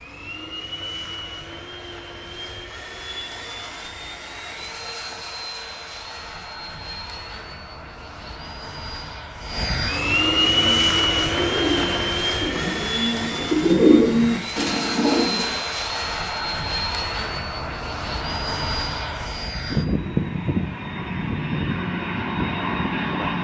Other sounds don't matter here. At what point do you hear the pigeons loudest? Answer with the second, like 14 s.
14 s.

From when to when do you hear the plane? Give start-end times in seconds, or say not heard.
0.0-23.3.